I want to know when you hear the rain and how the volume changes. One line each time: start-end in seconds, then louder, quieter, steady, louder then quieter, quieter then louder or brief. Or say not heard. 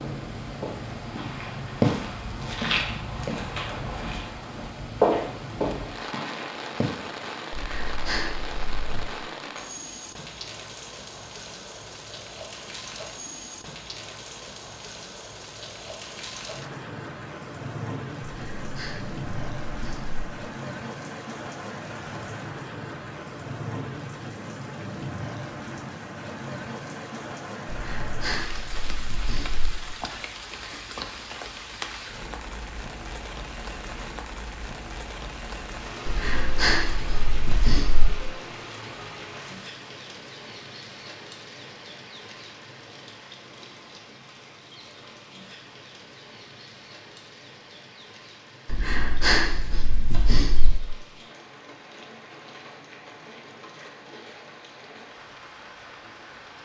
0.0-56.6 quieter.